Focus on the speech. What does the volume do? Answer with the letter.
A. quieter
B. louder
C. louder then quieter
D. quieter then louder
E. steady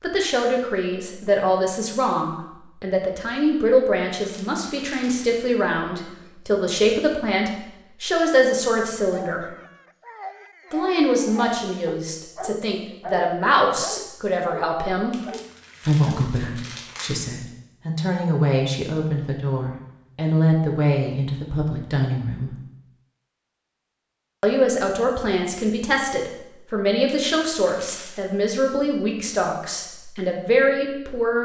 E.